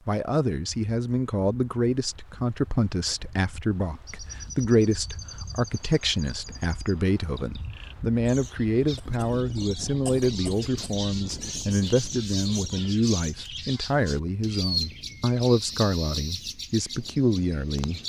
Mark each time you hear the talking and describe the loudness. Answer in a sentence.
You can hear the talking from 0.1 to 18.0 s, at a steady volume.